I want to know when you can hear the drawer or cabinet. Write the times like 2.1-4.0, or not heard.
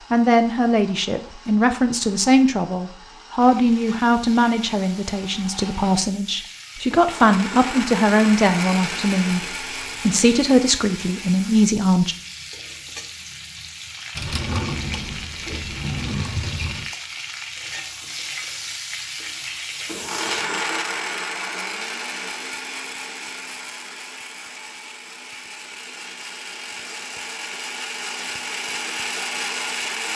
14.1-16.9.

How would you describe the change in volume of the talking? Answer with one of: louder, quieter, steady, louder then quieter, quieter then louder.
steady.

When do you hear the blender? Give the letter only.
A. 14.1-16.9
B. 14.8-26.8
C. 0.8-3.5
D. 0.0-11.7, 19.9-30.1
D.